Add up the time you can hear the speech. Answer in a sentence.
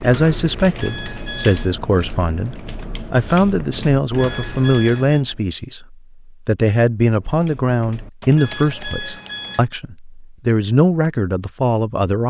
The speech can be heard for 12 seconds in total.